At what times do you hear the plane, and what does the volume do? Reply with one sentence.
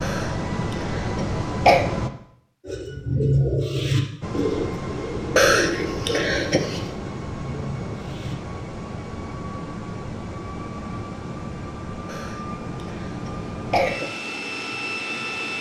You can hear the plane briefly from 0.0 to 2.1 s; and from 4.2 to 15.5 s, at a steady volume.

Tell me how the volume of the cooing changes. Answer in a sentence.
The volume of the cooing goes down.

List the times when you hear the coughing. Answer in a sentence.
The coughing can be heard from 0.0 to 1.9 s, from 5.3 to 6.9 s and from 12.1 to 14.1 s.